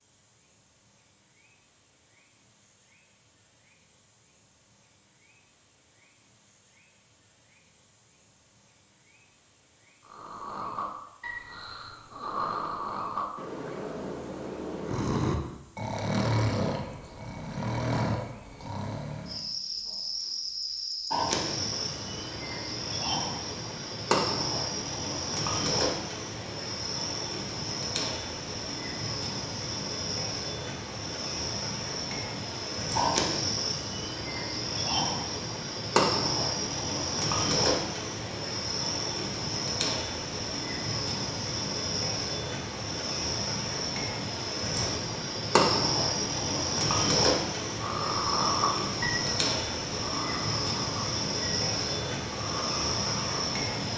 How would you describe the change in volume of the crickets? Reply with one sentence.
The volume of the crickets goes up.